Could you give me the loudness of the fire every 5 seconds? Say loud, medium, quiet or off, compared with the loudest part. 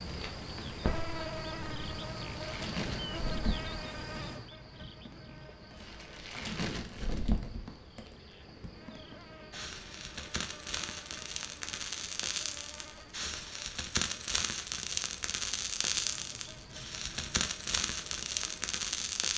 medium, medium, loud, loud.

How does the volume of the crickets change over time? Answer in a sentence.
The loudness of the crickets goes down.